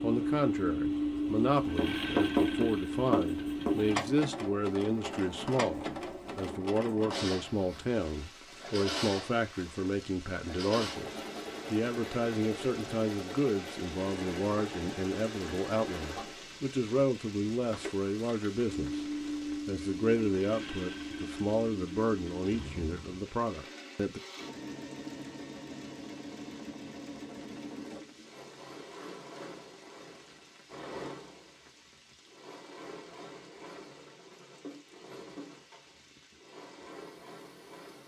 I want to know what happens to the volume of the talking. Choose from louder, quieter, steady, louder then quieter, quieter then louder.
steady.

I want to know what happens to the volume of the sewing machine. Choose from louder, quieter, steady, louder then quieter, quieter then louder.
quieter.